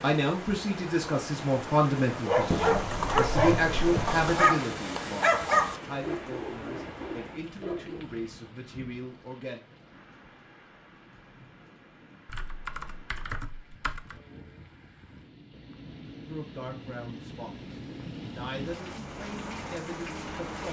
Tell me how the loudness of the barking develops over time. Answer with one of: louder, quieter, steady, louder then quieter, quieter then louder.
quieter.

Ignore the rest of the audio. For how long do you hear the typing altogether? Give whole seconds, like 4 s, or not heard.
4 s.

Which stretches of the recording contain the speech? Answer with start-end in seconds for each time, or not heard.
0.0-9.6, 16.2-20.6.